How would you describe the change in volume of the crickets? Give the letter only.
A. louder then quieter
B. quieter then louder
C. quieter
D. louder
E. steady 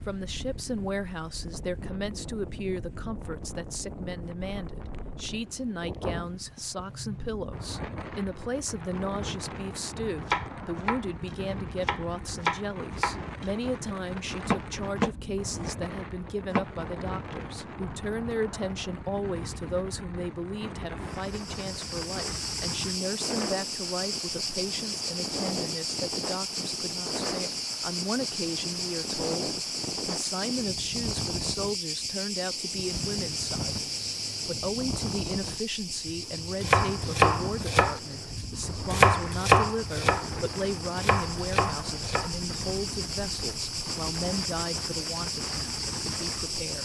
B.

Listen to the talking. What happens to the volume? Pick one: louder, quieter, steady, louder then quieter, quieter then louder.
steady.